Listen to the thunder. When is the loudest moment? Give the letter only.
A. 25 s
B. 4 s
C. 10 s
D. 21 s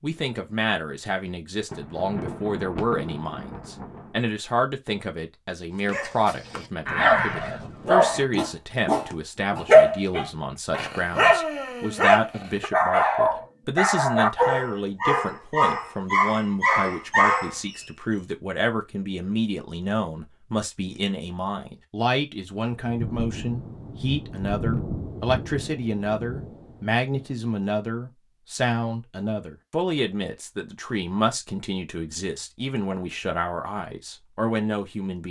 A.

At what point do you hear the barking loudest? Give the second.
10 s.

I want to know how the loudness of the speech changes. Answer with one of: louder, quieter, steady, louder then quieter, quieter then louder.
steady.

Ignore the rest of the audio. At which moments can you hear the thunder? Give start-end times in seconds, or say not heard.
1.7-4.2, 22.7-27.2.